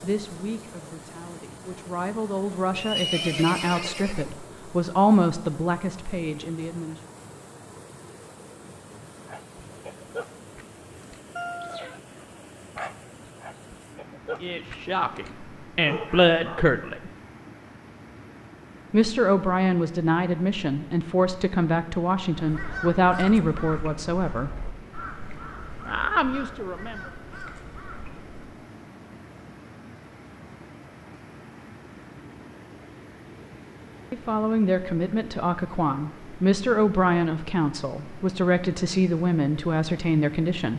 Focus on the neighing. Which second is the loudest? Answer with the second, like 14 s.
3 s.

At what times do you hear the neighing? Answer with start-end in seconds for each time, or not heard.
2.7-4.3.